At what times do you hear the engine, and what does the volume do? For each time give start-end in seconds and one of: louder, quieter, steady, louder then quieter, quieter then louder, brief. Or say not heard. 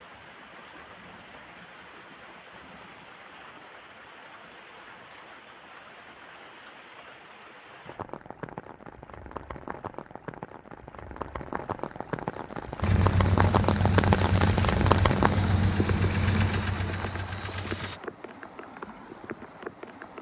12.8-18.0 quieter.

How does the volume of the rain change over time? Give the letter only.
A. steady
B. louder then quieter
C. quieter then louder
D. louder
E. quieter
B.